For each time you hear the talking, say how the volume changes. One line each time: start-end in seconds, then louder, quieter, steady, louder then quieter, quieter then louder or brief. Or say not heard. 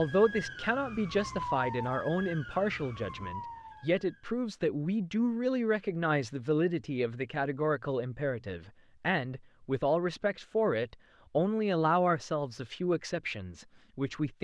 0.0-14.4 steady.